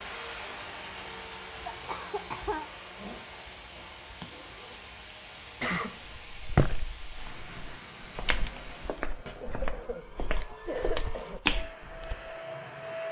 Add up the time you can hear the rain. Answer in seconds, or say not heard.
9 s.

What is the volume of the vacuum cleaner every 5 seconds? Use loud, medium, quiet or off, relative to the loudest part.
loud, medium, loud.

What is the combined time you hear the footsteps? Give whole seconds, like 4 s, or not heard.
6 s.